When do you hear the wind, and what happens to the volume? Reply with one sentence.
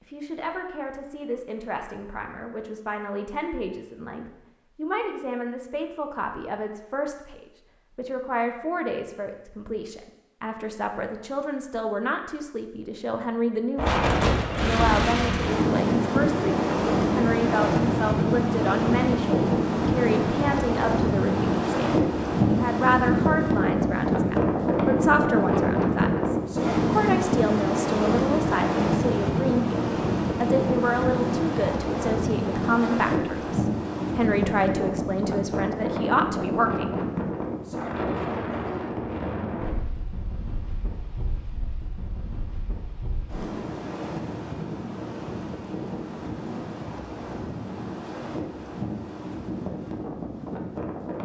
You can hear the wind from 13.8 to 51.2 s, getting quieter.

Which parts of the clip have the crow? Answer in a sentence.
You can't hear the crow here.